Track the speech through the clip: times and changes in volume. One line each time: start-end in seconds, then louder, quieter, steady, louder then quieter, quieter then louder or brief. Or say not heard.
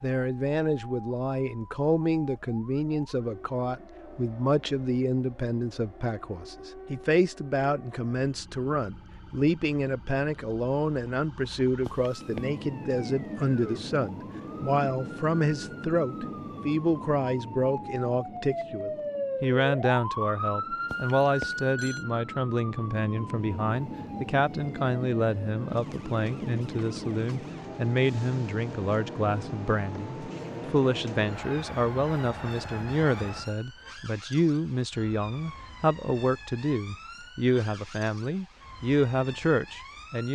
0.0-40.3 steady.